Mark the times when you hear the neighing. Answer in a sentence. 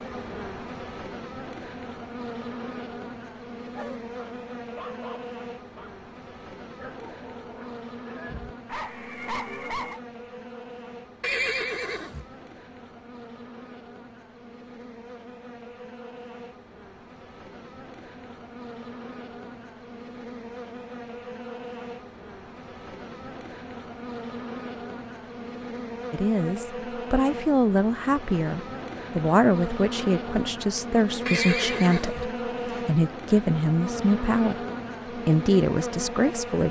The neighing can be heard from 11.2 to 12.2 s and from 31.2 to 32.8 s.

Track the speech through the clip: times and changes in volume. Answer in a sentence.
You can hear the speech from 26.1 to 36.6 s, at a steady volume.